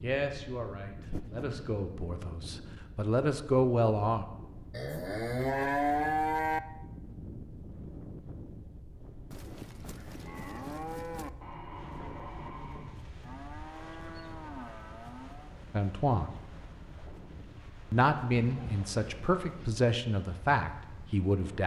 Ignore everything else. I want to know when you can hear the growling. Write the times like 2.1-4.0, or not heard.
11.4-12.9.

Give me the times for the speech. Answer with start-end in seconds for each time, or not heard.
0.0-4.2, 15.7-16.4, 17.9-21.6.